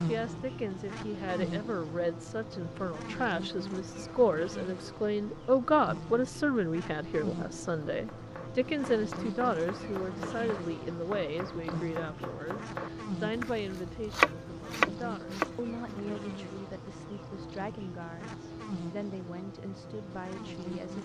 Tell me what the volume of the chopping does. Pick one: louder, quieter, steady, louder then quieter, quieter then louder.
louder.